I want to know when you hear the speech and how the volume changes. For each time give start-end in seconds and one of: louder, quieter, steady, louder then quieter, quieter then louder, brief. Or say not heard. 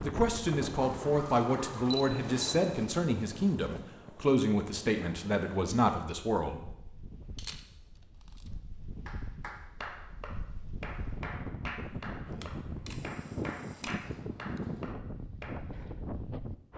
0.0-6.6 steady.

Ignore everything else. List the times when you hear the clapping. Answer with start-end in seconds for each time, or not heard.
9.1-15.8.